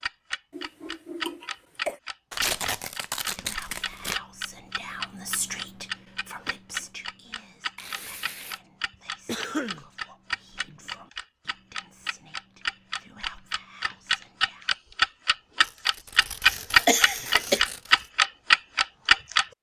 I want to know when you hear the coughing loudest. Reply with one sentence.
The loudest moment of the coughing is at 17 seconds.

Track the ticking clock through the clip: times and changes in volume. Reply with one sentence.
The ticking clock can be heard from 0.0 to 19.4 s, getting louder.